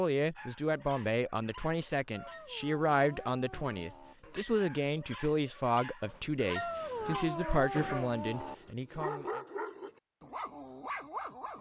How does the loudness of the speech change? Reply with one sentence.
The loudness of the speech stays about the same.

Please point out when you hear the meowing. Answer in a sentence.
The meowing can be heard from 2.1 to 4.2 s and from 6.5 to 8.6 s.